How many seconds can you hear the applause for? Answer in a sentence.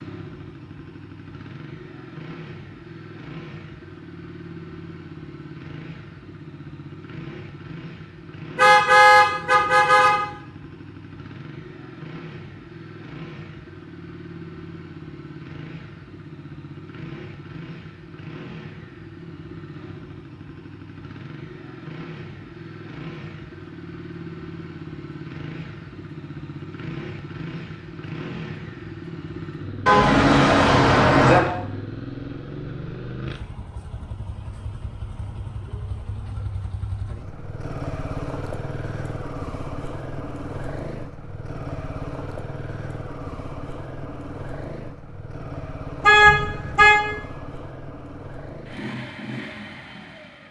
You can't hear the applause here.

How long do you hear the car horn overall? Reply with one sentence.
You can hear the car horn for 4 seconds altogether.